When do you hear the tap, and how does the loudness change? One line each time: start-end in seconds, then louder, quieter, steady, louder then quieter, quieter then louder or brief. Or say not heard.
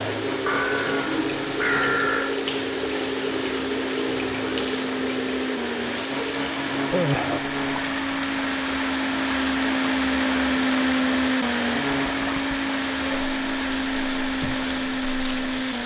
0.0-15.8 quieter.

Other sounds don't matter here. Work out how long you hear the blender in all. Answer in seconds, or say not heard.
16 s.